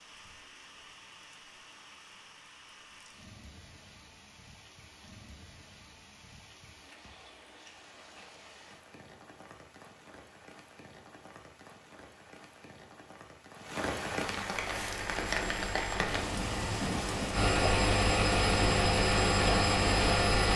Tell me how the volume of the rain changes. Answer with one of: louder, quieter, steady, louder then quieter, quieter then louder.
louder.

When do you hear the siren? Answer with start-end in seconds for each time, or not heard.
not heard.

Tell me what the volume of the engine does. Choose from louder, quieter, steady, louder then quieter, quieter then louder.
louder.